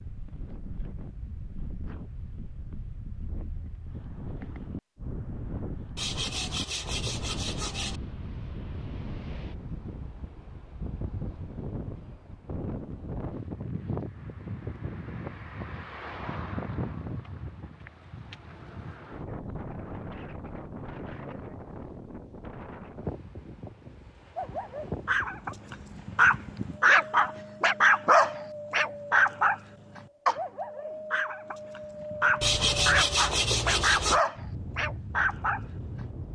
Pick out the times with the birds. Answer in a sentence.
The birds can't be heard in this clip.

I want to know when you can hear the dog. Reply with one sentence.
You can hear the dog from 24.4 to 36.0 s.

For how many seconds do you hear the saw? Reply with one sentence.
You can hear the saw for 4 seconds altogether.